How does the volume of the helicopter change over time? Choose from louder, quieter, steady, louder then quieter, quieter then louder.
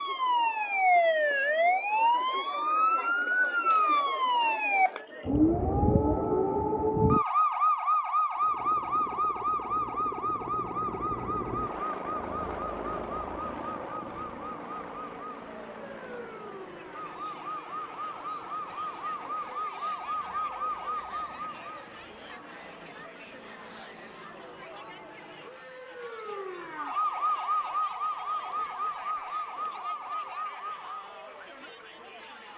quieter.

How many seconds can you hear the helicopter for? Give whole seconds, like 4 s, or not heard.
17 s.